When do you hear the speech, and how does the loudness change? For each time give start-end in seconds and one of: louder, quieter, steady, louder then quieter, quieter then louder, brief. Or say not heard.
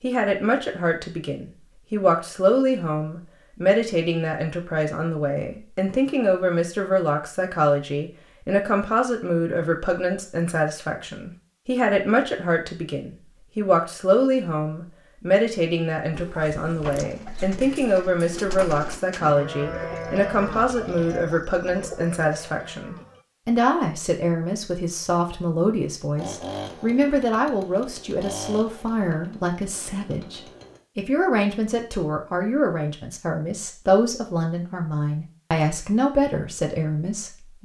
0.0-37.6 steady.